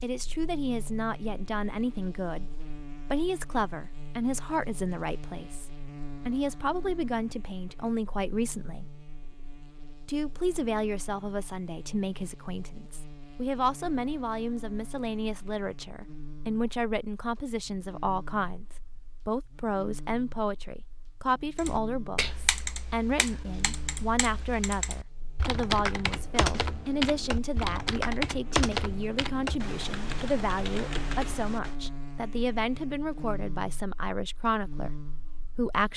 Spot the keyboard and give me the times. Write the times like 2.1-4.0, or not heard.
21.6-31.8.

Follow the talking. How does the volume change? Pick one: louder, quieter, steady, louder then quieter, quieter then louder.
steady.